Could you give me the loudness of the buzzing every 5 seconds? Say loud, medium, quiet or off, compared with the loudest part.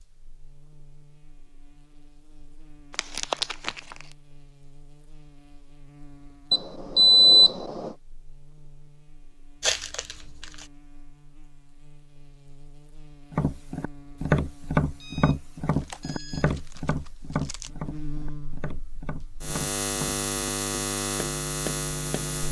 quiet, quiet, quiet, medium, loud.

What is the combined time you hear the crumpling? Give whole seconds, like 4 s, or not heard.
4 s.